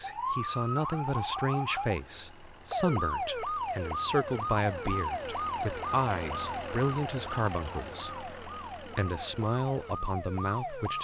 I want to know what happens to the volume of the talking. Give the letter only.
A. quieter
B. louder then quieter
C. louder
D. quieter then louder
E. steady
E.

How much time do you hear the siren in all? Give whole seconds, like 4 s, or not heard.
11 s.